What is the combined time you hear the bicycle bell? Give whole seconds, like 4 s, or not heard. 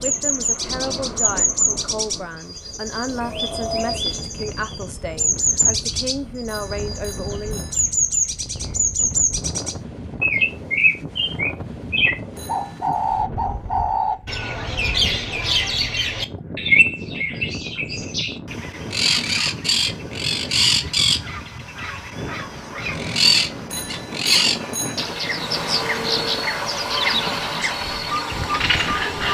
3 s.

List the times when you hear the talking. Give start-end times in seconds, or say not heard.
0.0-7.7.